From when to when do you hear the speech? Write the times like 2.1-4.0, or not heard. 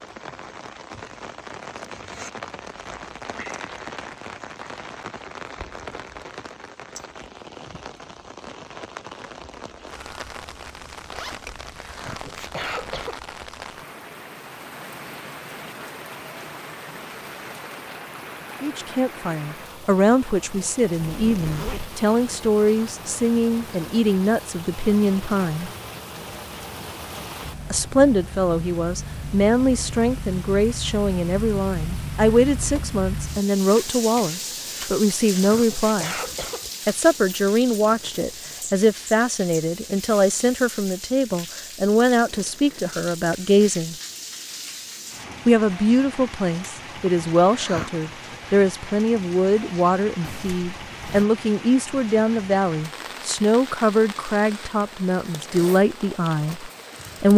18.6-25.7, 27.7-36.1, 36.9-44.0, 45.5-57.3.